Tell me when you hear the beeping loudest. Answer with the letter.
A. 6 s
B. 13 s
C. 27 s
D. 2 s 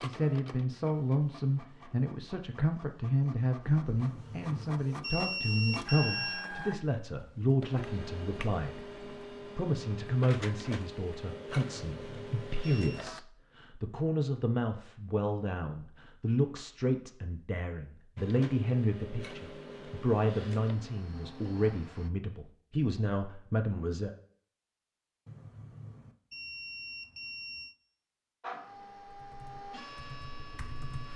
A.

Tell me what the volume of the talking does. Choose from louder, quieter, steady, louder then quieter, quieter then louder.
steady.